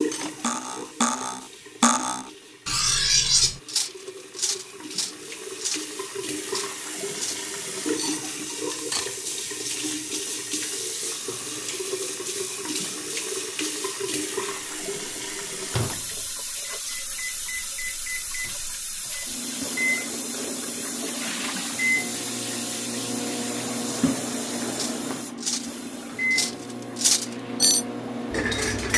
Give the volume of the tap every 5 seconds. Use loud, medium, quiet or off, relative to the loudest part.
medium, loud, loud, loud, loud, quiet.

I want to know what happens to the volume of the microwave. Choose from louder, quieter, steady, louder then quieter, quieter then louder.
louder.